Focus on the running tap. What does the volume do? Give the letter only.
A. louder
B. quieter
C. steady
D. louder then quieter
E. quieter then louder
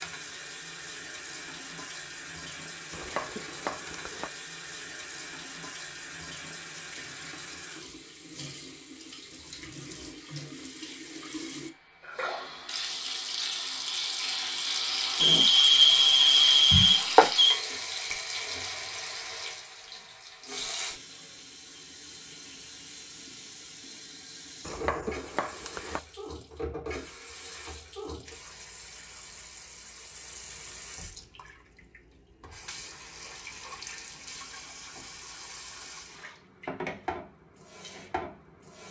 D.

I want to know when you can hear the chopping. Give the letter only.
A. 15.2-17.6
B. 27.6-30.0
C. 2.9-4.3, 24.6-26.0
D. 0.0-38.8
C.